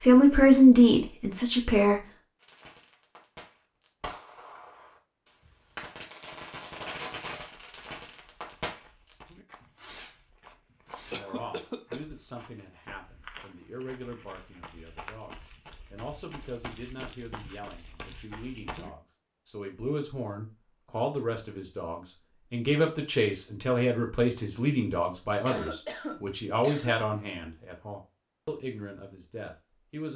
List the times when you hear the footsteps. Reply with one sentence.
You can hear the footsteps from 7.3 to 18.9 s.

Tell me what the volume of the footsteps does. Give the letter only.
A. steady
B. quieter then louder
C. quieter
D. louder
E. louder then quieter
D.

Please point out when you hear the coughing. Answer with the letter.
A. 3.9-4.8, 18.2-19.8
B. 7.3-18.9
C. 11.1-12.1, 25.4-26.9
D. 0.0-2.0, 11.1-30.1
C.